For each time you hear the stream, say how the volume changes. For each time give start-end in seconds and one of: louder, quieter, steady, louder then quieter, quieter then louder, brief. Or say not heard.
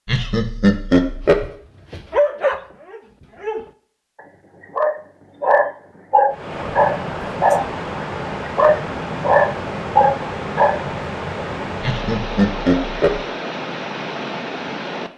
6.3-15.1 steady.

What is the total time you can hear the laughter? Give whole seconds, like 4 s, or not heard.
3 s.